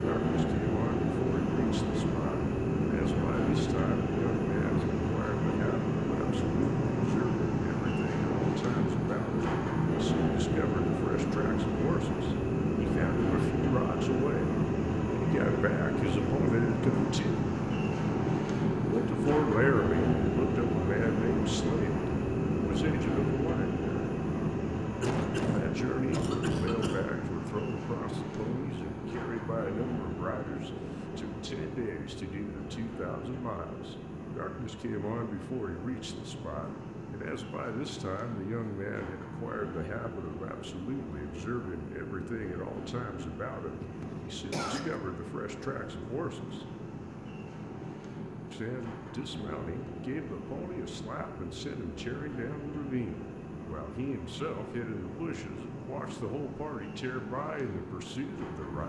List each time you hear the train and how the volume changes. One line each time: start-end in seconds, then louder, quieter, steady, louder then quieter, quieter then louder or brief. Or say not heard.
0.0-58.8 quieter.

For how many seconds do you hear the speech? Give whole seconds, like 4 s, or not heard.
54 s.